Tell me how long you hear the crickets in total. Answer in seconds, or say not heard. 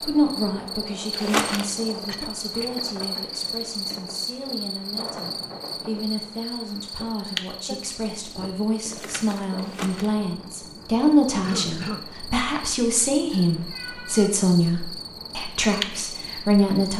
17 s.